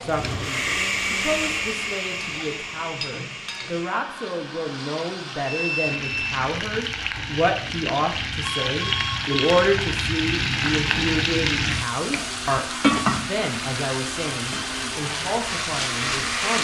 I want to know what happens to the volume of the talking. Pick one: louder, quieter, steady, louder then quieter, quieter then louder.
louder then quieter.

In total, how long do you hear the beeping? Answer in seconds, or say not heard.
2 s.